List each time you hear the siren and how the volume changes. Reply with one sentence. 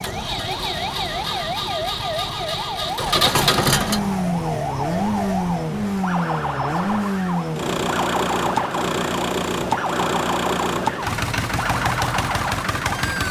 The siren can be heard from 0.0 to 13.2 s, at a steady volume.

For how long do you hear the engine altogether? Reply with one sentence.
The engine can be heard for 13 seconds in total.